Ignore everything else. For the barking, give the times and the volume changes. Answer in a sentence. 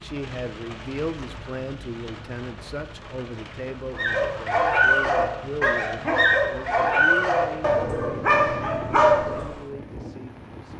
The barking can be heard from 4.0 to 9.4 s, at a steady volume.